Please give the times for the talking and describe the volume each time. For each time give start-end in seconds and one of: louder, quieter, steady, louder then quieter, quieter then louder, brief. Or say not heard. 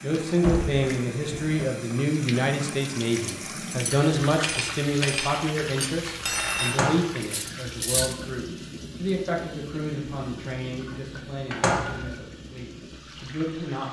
0.0-13.8 quieter.